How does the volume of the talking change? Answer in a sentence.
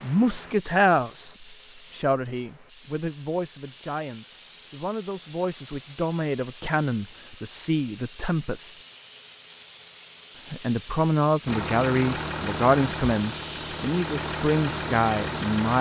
The volume of the talking goes down, then up.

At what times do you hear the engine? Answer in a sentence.
You can hear the engine from 11.4 to 15.7 s.